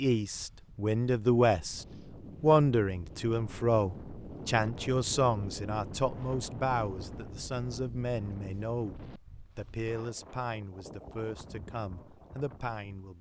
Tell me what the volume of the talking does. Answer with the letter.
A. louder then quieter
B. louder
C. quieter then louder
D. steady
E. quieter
E.